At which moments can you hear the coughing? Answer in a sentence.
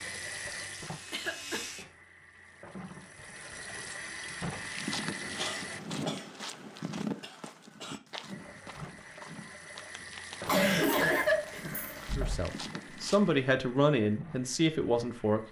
You can hear the coughing from 1.1 to 1.6 s, from 5.2 to 8.0 s and from 10.4 to 12.3 s.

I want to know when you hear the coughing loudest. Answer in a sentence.
The loudest moment of the coughing is at 11 seconds.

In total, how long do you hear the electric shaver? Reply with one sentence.
You can hear the electric shaver for 2 seconds altogether.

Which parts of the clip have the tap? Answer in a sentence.
You can hear the tap from 0.0 to 5.8 s and from 8.2 to 15.4 s.